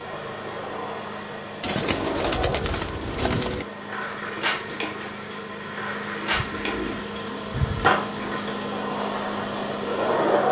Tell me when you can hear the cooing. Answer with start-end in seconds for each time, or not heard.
1.6-3.6, 6.3-7.9.